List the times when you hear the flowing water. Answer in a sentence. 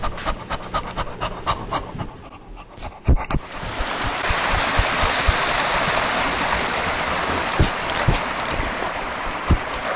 You can hear the flowing water from 3.4 to 9.9 s.